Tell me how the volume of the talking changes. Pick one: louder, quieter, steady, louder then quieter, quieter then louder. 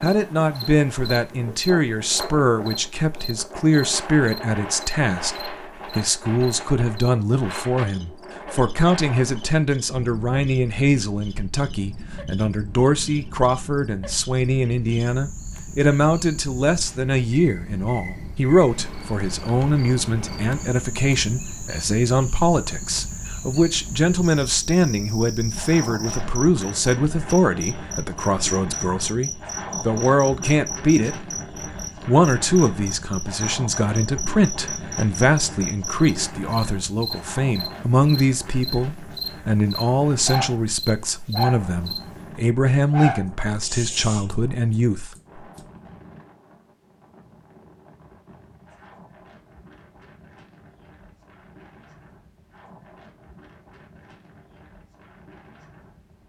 steady.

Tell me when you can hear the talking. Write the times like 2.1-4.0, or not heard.
0.0-31.2, 32.0-45.1.